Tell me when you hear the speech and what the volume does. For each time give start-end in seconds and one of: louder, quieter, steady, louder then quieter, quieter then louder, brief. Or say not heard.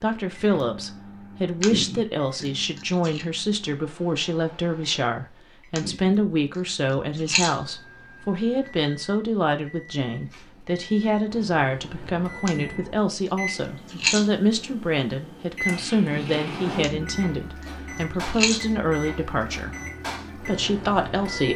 0.0-19.8 steady
20.4-21.5 brief.